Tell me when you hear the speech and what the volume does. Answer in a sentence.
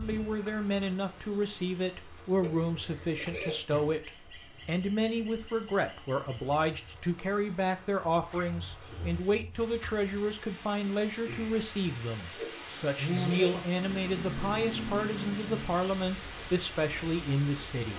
You can hear the speech from 0.0 to 17.9 s, at a steady volume.